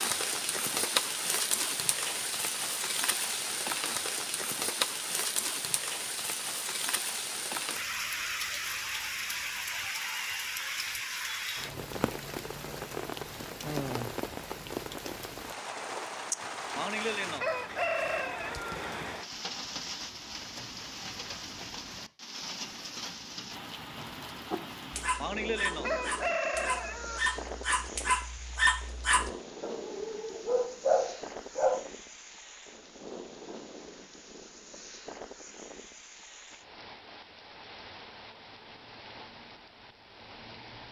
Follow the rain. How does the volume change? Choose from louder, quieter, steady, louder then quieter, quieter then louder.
quieter.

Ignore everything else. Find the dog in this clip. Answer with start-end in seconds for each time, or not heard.
24.5-31.8.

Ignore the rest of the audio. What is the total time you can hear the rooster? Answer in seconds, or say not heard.
4 s.